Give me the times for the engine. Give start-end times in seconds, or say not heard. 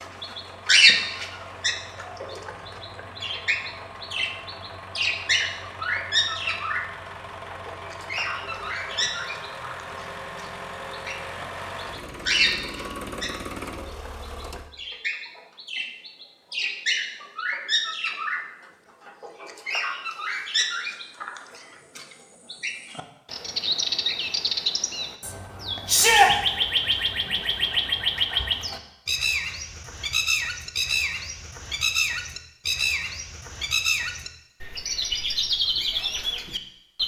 0.0-14.7.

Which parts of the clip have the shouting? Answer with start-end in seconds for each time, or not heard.
25.9-26.3.